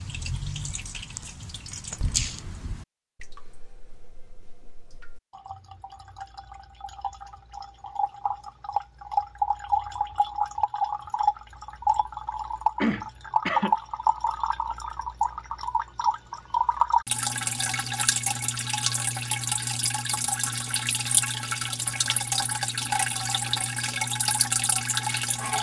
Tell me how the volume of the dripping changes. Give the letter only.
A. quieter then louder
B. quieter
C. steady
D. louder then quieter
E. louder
E.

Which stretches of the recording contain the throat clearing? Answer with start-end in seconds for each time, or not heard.
12.8-13.8.